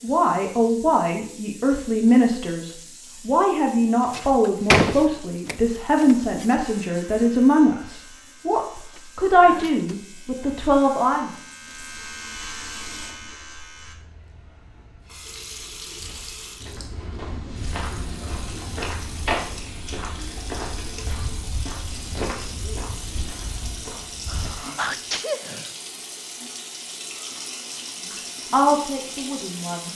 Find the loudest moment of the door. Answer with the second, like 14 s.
5 s.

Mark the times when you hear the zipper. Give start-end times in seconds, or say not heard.
not heard.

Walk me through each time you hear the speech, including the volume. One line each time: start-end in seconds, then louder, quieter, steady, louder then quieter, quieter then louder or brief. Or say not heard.
0.0-11.3 steady
28.5-29.9 brief.